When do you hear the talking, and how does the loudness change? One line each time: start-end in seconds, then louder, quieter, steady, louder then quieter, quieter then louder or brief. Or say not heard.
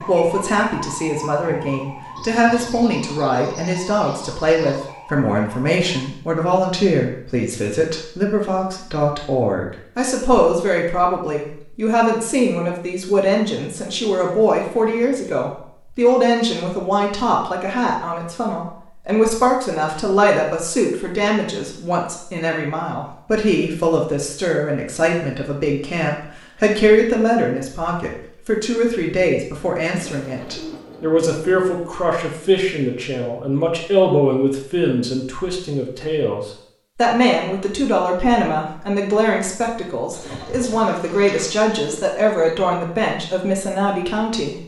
0.1-44.6 steady.